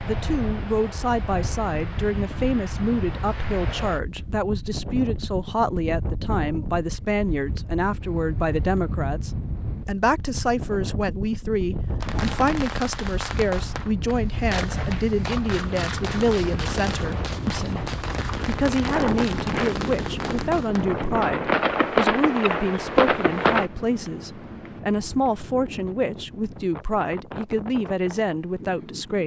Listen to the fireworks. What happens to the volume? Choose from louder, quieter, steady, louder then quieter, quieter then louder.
louder.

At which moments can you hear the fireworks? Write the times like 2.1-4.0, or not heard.
12.0-23.7.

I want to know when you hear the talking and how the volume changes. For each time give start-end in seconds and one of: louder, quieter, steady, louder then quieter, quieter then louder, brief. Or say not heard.
0.0-29.2 steady.